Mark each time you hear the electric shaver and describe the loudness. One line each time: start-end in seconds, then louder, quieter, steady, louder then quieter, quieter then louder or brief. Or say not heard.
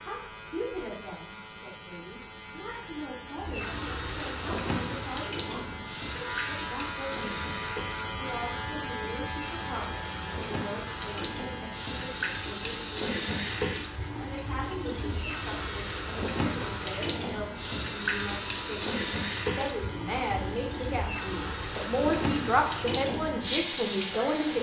0.0-24.5 louder then quieter.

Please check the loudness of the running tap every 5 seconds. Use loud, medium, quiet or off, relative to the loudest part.
loud, medium, loud, loud, loud.